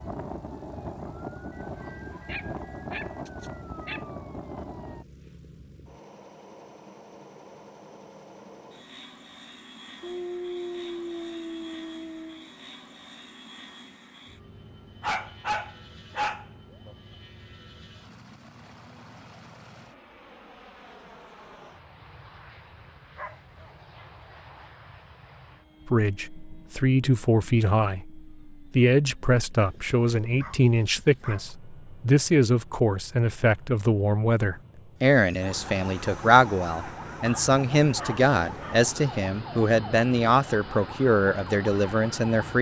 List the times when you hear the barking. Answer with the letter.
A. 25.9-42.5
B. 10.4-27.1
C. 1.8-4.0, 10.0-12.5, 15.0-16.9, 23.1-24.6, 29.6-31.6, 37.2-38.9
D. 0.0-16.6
C.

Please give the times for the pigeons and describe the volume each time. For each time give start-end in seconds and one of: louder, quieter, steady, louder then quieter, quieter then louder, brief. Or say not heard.
not heard.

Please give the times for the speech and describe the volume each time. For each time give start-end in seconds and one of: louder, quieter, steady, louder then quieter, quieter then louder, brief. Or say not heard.
25.9-42.5 steady.